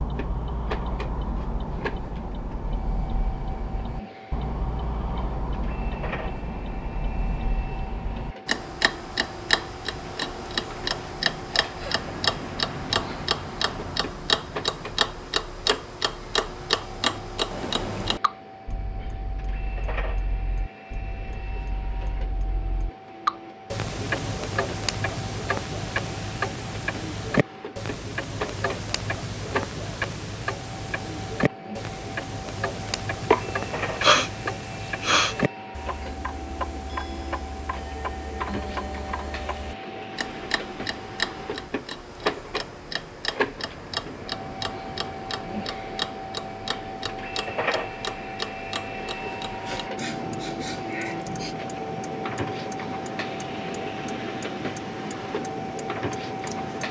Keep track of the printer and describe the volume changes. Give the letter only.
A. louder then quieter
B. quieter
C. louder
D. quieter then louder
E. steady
C.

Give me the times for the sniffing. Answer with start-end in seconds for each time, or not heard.
11.4-12.0, 33.3-35.4, 49.6-51.5.